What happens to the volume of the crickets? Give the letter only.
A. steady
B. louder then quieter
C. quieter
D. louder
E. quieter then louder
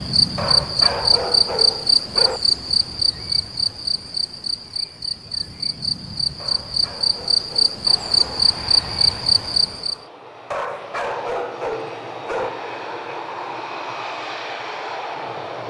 E.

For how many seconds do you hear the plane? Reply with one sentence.
You can hear the plane for 8 seconds altogether.